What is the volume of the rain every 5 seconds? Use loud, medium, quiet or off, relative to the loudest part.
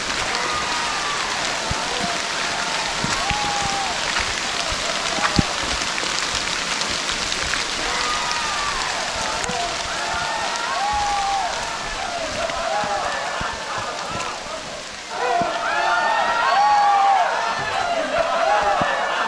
loud, loud, medium, medium.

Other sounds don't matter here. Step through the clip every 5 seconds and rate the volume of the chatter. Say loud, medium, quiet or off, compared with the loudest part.
medium, medium, medium, loud.